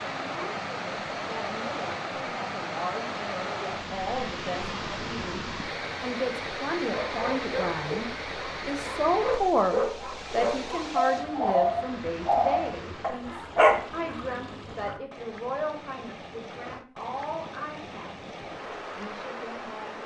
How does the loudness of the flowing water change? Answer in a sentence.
The volume of the flowing water goes down.